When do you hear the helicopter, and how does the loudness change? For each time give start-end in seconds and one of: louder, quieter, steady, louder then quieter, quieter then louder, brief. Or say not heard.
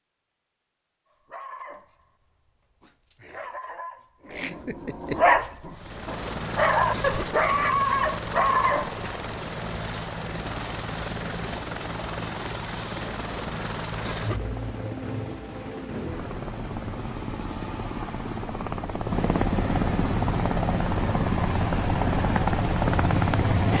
5.7-23.7 louder.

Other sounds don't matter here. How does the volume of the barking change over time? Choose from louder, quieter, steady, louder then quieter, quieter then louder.
louder.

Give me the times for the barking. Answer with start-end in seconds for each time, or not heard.
1.2-9.1.